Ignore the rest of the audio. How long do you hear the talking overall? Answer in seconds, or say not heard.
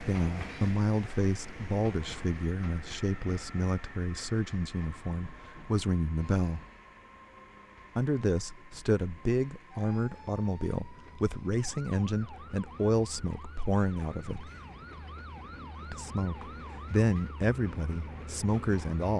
16 s.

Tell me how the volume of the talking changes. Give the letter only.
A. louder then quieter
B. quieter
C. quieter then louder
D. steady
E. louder
D.